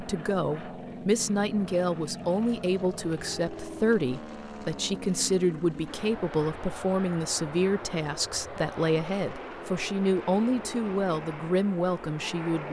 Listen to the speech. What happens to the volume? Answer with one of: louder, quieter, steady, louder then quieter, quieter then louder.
steady.